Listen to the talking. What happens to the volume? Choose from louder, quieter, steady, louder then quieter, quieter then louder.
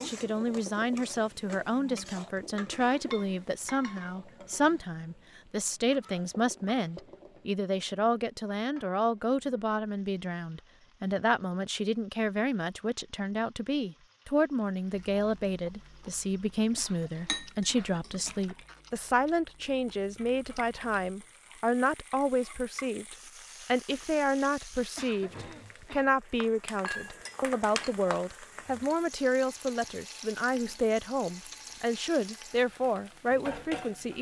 steady.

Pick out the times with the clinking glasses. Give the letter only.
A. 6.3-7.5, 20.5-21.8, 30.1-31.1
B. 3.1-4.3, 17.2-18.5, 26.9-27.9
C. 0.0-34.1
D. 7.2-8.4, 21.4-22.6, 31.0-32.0
B.